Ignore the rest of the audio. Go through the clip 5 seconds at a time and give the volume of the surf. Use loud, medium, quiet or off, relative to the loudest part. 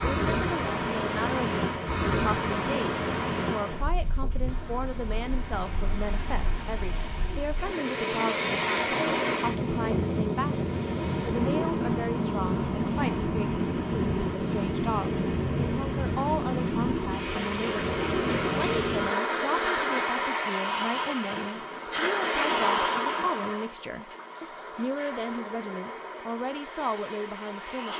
loud, loud, loud, loud, loud, medium.